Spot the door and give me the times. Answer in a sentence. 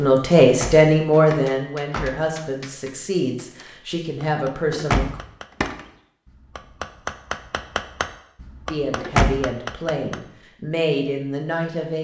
The door can be heard from 0.4 to 2.2 s, from 4.7 to 5.8 s and from 8.9 to 9.5 s.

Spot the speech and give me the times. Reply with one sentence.
You can hear the speech from 0.0 to 5.2 s and from 8.7 to 11.9 s.